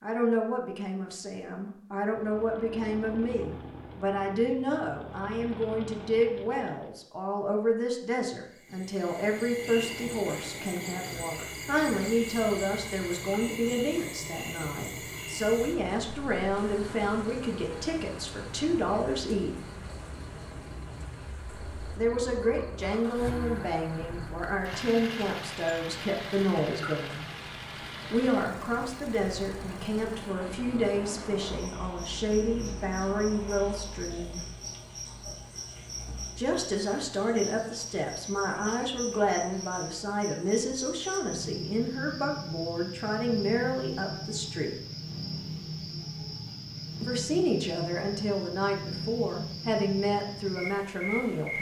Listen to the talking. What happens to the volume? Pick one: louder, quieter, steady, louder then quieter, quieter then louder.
steady.